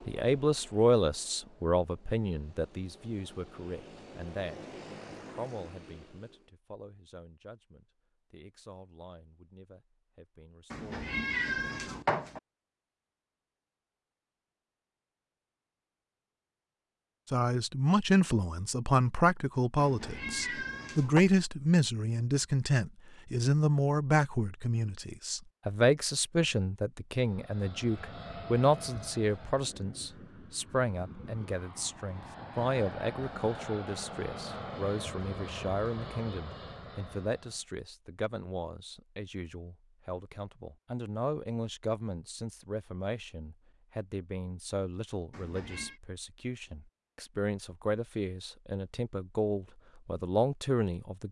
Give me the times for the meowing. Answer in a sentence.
The meowing can be heard from 10.7 to 12.4 s, from 19.8 to 21.2 s and from 45.3 to 46.0 s.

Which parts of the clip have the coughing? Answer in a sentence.
The coughing can't be heard in this clip.